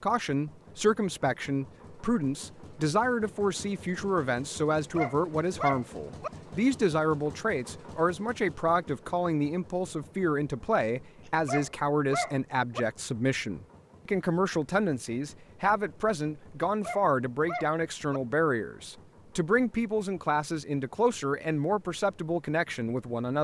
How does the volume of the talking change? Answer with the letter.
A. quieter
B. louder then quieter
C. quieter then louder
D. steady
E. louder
D.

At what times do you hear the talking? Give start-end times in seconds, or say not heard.
0.0-23.3.